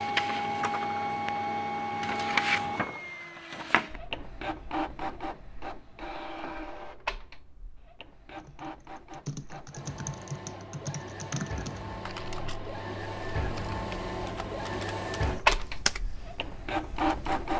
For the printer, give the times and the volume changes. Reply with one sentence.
You can hear the printer from 0.0 to 17.5 s, getting quieter then louder.